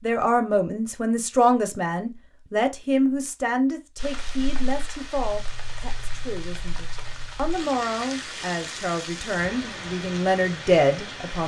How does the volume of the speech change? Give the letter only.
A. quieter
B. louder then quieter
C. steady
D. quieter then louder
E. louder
D.